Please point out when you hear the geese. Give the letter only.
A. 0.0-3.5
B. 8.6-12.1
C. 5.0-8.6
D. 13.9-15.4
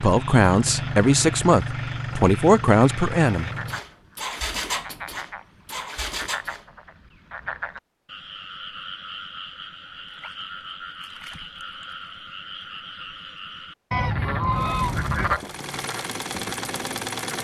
D.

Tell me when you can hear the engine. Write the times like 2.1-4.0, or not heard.
0.0-6.7, 14.6-17.3.